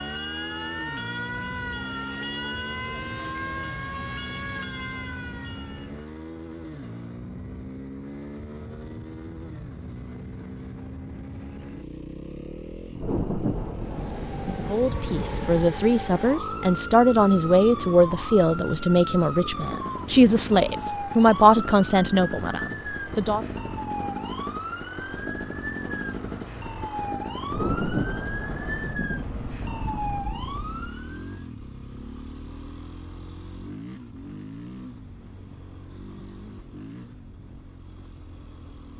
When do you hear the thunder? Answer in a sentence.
The thunder can be heard from 12.9 to 15.7 s and from 27.4 to 30.9 s.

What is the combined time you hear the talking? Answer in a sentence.
You can hear the talking for 9 seconds altogether.